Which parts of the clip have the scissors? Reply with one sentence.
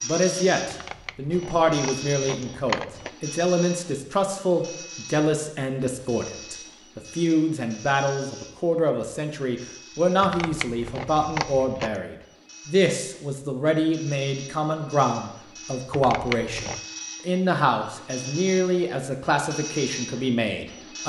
The scissors can be heard from 0.7 to 3.1 s, from 10.2 to 12.0 s and from 15.9 to 16.8 s.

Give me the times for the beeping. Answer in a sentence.
The beeping can't be heard in this clip.